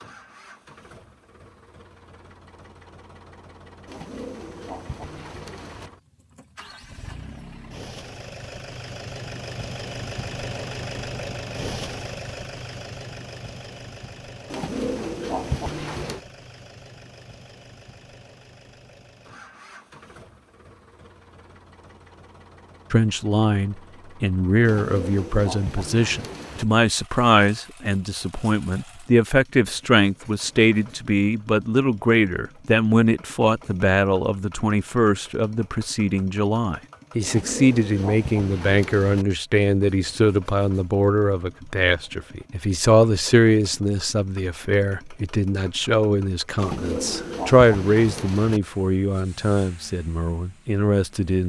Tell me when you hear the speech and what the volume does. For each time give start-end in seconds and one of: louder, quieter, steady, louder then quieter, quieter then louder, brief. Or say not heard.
22.9-51.4 steady.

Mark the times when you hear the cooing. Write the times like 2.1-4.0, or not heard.
3.9-5.9, 14.5-16.2, 24.6-26.6, 37.2-39.2, 46.5-48.6.